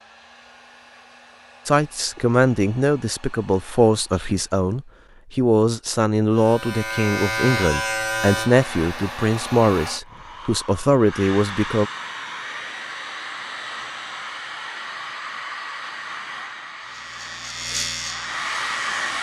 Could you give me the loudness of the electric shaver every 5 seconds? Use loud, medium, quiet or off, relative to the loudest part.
off, loud, off, medium.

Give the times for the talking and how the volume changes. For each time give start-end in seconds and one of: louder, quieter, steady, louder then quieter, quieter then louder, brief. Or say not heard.
1.6-11.9 steady.